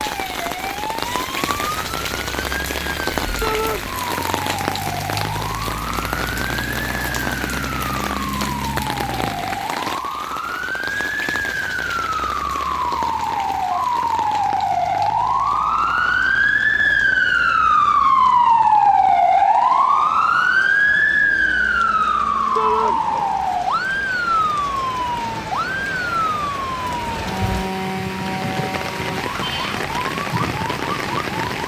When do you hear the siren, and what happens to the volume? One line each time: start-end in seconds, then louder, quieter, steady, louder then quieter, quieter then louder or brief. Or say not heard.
0.0-31.6 louder then quieter.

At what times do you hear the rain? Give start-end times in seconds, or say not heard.
0.0-31.6.